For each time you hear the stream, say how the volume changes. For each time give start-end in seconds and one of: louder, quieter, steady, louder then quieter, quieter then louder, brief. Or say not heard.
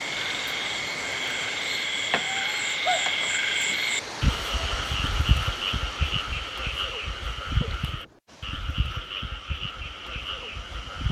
0.0-11.0 quieter.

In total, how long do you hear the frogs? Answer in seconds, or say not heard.
11 s.